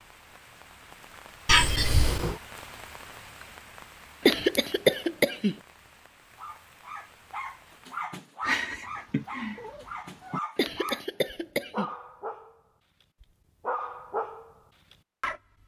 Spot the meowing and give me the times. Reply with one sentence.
You can hear the meowing from 1.4 to 2.4 s and from 8.4 to 10.4 s.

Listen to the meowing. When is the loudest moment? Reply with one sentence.
The loudest moment of the meowing is at 2 seconds.